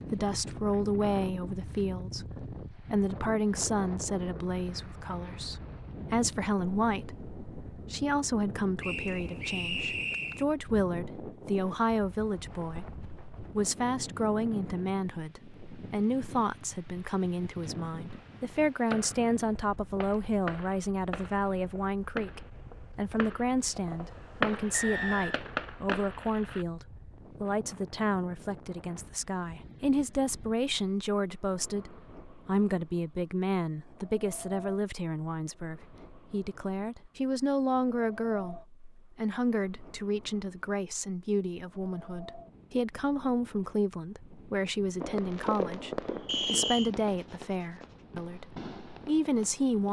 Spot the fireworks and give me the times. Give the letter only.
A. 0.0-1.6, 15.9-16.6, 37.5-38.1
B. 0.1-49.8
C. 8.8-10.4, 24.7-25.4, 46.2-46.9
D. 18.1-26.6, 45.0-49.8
D.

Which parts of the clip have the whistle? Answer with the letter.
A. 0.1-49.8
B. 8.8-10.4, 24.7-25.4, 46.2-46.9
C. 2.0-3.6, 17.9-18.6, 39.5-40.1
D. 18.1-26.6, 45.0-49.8
B.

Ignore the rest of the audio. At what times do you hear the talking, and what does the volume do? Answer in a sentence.
The talking can be heard from 0.1 to 49.8 s, at a steady volume.